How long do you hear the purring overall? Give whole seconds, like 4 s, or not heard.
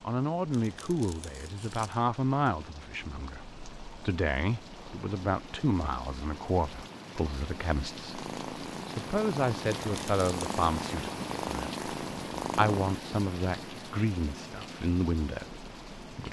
5 s.